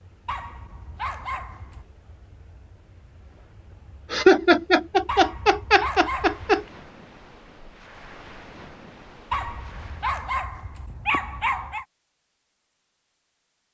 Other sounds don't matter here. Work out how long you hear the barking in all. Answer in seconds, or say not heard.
6 s.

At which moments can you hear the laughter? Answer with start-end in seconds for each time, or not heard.
4.1-6.7.